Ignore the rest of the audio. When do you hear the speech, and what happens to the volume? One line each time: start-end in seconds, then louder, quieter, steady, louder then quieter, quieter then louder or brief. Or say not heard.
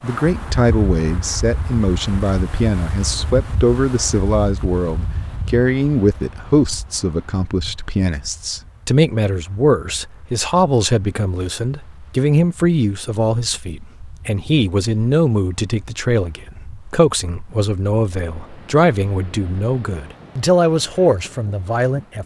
0.0-22.2 steady.